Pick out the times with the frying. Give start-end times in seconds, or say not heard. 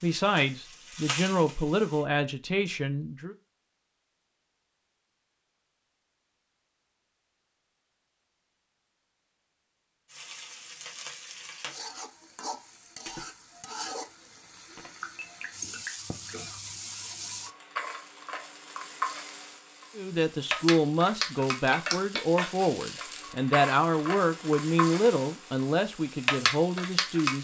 0.0-2.0, 10.1-27.3.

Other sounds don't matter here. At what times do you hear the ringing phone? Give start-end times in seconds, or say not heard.
14.8-16.4.